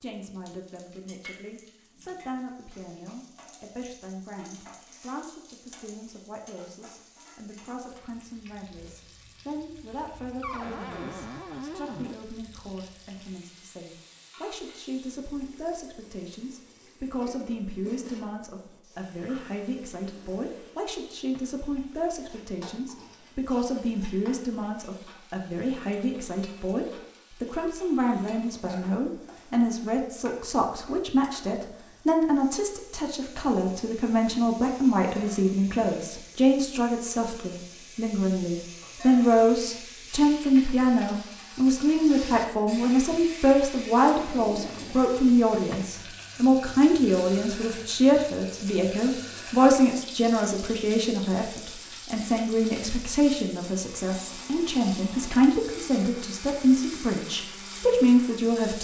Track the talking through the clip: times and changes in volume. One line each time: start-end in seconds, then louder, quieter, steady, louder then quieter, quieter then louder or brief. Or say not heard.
0.0-58.7 louder.